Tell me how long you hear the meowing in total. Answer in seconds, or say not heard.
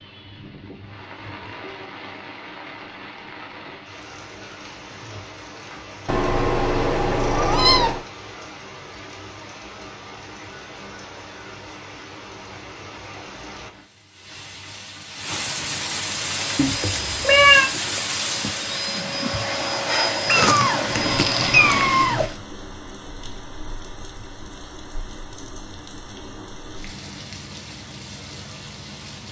5 s.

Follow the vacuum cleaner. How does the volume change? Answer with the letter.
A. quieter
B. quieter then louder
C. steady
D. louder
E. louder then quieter
D.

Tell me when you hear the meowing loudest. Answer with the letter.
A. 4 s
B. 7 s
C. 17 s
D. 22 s
C.